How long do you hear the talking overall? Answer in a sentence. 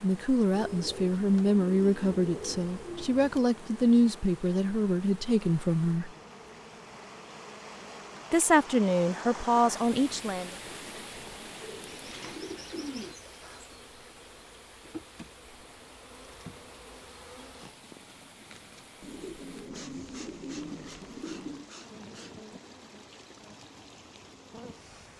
The talking can be heard for 8 seconds in total.